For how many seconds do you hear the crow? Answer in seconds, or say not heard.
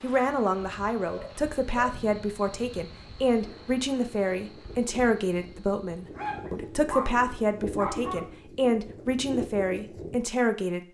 not heard.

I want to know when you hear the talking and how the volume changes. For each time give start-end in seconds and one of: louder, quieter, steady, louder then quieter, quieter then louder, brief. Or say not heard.
0.0-10.8 steady.